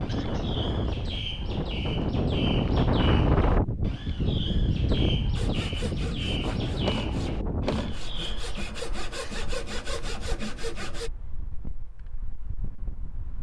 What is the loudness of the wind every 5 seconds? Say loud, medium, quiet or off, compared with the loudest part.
loud, medium, quiet.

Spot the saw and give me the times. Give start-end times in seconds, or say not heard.
5.3-11.1.